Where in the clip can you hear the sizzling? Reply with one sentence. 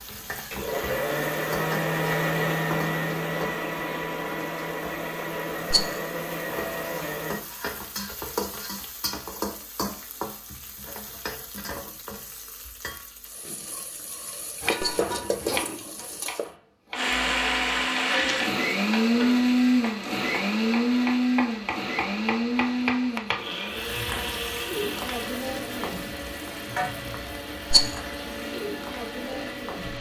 You can hear the sizzling from 0.0 to 16.5 s and from 23.6 to 29.9 s.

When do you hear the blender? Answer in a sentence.
The blender can be heard from 0.0 to 7.4 s and from 16.9 to 29.9 s.